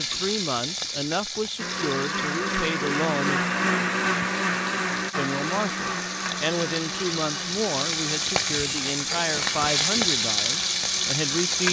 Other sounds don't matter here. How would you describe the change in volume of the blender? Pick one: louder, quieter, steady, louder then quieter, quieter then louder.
quieter.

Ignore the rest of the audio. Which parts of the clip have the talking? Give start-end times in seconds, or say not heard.
0.0-3.4, 5.2-11.6.